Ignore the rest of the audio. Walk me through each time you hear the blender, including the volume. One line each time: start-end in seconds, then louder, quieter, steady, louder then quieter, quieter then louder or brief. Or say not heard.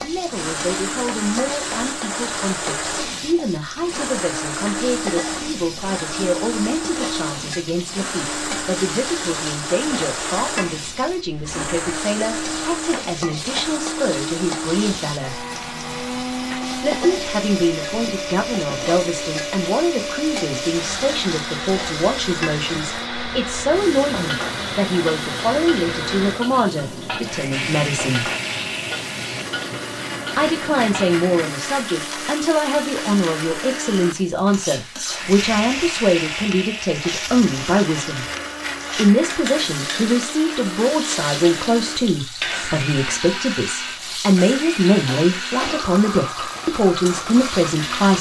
0.2-48.1 steady.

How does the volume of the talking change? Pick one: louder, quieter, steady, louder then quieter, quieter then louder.
louder.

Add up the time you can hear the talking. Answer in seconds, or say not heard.
44 s.